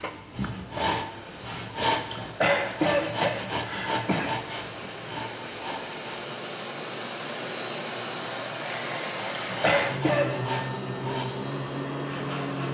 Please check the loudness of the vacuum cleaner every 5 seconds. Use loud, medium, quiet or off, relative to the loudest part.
medium, loud, loud.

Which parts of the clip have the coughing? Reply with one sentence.
The coughing can be heard from 2.1 to 4.3 s and from 9.6 to 10.3 s.